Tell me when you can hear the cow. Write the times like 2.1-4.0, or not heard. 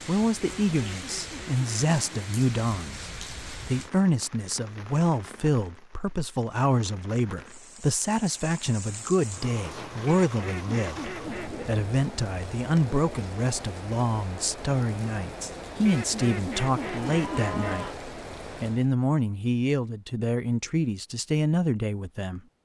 16.8-18.1.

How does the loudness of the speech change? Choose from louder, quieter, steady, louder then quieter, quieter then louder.
steady.